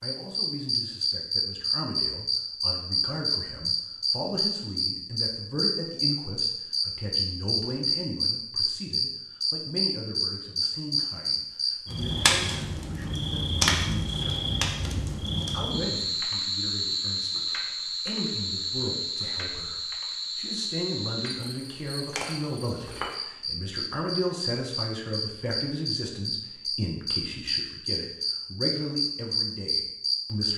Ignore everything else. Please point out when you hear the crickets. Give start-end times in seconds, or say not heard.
0.0-30.5.